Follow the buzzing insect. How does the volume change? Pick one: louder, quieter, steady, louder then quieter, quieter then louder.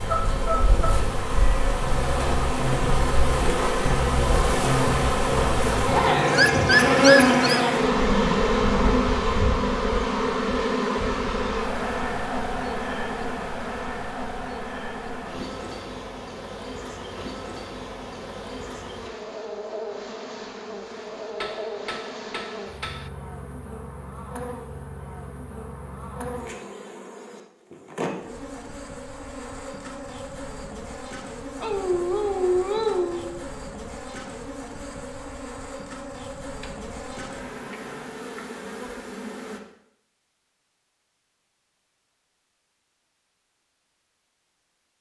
quieter.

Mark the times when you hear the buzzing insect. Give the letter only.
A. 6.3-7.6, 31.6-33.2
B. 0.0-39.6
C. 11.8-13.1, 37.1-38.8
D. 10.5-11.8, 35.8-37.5
B.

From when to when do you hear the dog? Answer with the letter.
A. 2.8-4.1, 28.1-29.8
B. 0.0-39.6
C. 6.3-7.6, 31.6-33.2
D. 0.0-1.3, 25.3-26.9
C.